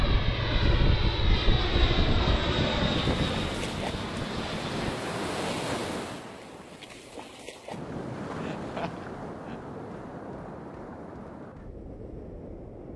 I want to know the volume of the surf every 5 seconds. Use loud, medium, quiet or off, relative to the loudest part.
loud, loud, medium.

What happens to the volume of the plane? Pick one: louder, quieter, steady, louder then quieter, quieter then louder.
quieter.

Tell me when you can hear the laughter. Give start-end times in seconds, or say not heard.
8.3-9.6.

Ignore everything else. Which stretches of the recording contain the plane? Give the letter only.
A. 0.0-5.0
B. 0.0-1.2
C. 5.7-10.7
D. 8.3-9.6
A.